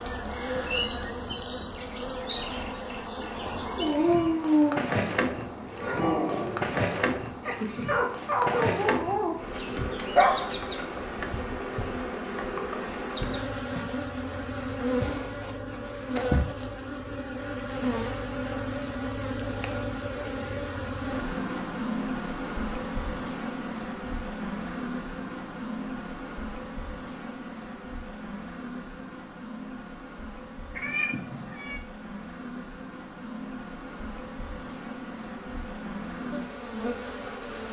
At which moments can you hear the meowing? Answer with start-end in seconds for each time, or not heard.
30.8-31.8.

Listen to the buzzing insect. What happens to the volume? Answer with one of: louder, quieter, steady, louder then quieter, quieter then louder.
quieter.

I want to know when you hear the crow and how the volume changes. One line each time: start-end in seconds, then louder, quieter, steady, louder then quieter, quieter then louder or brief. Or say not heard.
not heard.